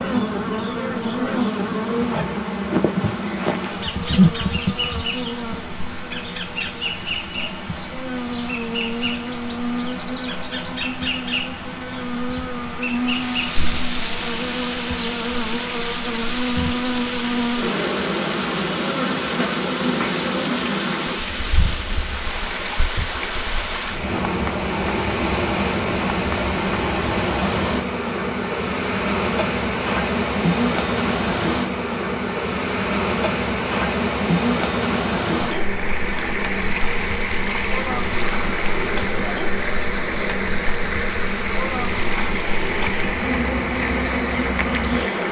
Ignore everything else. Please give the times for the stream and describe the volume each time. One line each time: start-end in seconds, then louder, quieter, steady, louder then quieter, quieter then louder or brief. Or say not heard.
0.0-45.2 louder.